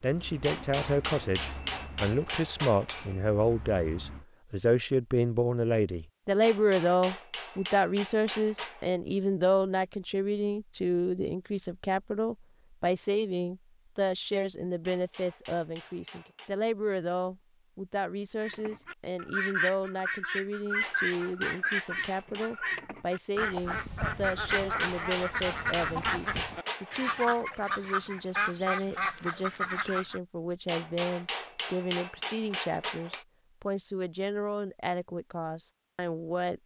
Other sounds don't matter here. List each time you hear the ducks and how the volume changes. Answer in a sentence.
You can hear the ducks from 18.4 to 30.2 s, at a steady volume.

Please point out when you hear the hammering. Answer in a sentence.
The hammering can be heard from 0.4 to 3.2 s, from 6.4 to 8.9 s, from 14.8 to 16.6 s, from 20.8 to 22.8 s, from 24.5 to 27.2 s and from 30.6 to 33.2 s.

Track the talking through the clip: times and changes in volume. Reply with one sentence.
The talking can be heard from 0.0 to 36.6 s, getting quieter.